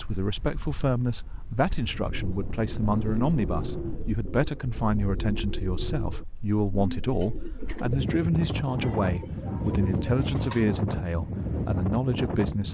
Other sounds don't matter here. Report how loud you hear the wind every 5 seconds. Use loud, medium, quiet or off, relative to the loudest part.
medium, loud, loud.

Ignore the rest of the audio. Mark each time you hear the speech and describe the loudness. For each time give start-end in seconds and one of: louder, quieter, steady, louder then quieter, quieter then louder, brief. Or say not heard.
0.0-12.6 steady.